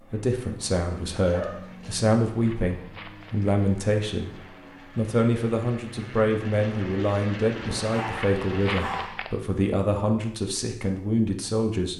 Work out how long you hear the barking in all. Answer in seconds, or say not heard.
2 s.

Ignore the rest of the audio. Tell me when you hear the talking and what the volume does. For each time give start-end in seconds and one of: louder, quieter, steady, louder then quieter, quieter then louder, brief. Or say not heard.
0.1-11.9 steady.